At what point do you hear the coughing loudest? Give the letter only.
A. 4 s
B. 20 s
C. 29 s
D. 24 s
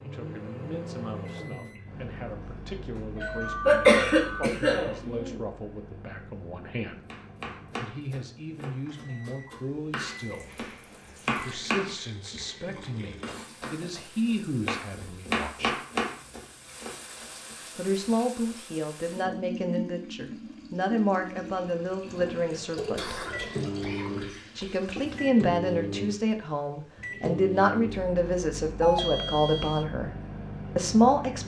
A.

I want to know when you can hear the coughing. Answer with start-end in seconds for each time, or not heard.
3.6-5.4, 22.9-24.8.